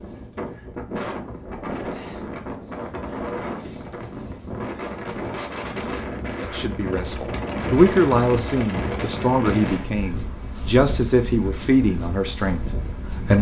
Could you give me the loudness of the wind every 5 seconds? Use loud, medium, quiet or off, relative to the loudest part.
loud, loud, medium.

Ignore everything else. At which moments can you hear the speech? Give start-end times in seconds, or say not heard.
6.4-13.3.